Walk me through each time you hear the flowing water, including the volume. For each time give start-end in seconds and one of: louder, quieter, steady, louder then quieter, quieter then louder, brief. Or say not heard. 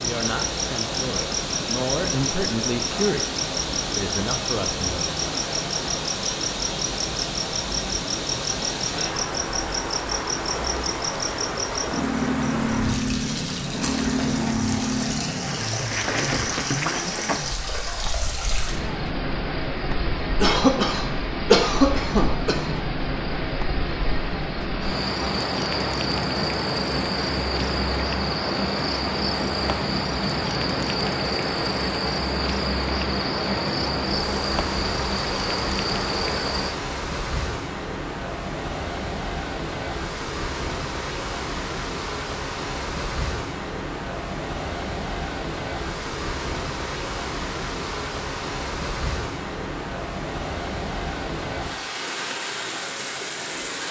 0.0-53.8 steady.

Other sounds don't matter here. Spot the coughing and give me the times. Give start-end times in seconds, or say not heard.
20.4-22.8.